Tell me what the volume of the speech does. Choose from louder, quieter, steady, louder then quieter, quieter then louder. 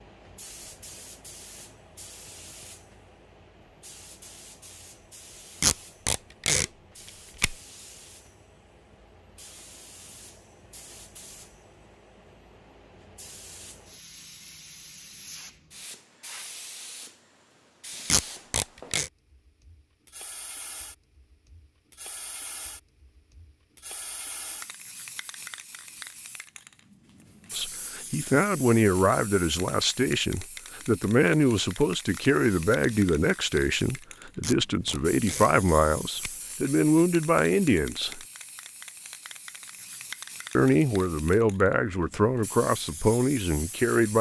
steady.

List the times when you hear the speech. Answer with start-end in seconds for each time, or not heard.
27.5-38.2, 40.5-44.1.